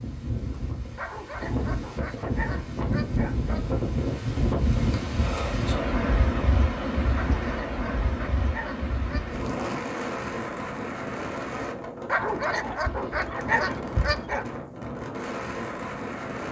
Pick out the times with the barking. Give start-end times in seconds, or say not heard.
0.9-3.6, 7.1-9.2, 12.1-14.4.